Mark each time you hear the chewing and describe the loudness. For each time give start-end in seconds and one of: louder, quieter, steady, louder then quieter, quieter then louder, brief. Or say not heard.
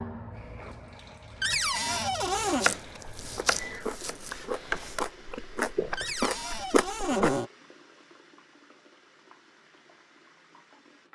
2.9-7.4 louder.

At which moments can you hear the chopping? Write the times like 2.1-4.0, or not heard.
2.4-5.0.